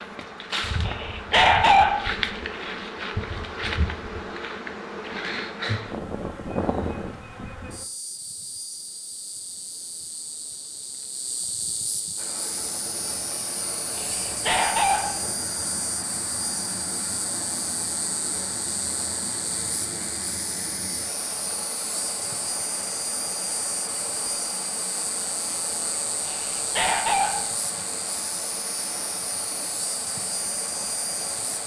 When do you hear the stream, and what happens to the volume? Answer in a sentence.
You can hear the stream from 12.2 to 31.6 s, at a steady volume.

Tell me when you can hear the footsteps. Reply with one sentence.
You can't hear the footsteps here.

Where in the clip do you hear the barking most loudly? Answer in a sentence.
The volume of the barking peaks at 2 seconds.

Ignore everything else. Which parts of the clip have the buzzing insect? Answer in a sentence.
The buzzing insect can be heard from 0.0 to 31.6 s.